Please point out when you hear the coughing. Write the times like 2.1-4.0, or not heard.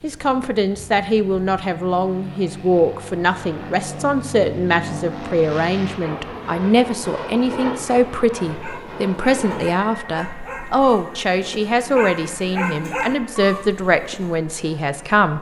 not heard.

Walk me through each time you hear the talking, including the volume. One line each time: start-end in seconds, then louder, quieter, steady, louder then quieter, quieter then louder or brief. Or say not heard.
0.0-15.3 steady.